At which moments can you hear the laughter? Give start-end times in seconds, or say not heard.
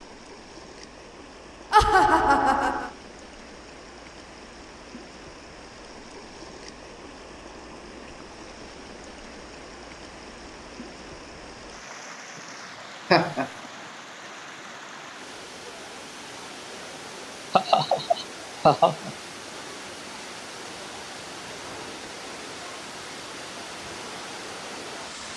1.7-2.9, 13.1-13.5, 17.5-19.1.